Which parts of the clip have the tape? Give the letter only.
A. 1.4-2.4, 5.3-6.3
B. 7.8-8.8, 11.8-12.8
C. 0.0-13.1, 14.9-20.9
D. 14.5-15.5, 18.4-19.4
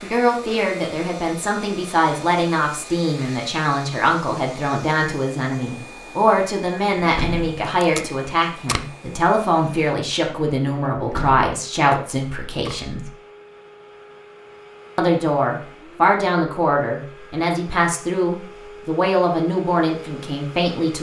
B.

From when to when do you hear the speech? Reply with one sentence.
You can hear the speech from 0.0 to 13.1 s and from 14.9 to 20.9 s.